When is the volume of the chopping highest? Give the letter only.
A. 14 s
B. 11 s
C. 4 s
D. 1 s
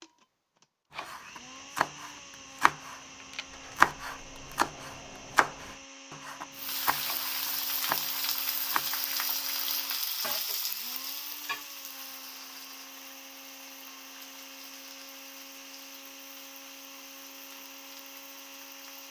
C.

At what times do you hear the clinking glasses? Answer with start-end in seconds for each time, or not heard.
not heard.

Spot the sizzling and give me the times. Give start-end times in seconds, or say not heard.
6.5-19.0.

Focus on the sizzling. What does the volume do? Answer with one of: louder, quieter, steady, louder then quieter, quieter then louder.
quieter.